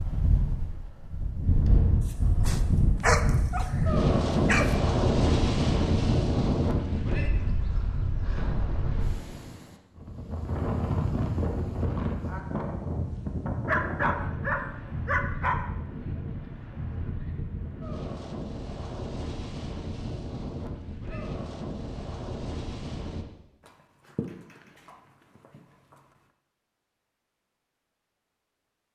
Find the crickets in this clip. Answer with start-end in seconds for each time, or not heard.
not heard.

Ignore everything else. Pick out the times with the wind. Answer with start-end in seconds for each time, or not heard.
0.0-23.2.